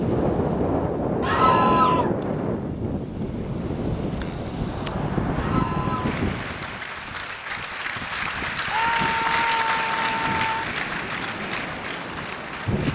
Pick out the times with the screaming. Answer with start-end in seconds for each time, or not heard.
1.2-2.1, 5.3-6.2, 8.7-10.7.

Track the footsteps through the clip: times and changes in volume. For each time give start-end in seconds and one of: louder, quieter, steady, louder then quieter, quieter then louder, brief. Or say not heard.
not heard.